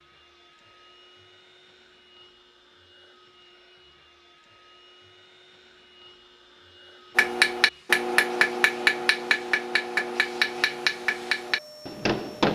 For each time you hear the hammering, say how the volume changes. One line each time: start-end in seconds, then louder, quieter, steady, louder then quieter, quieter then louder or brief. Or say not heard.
7.2-12.5 quieter.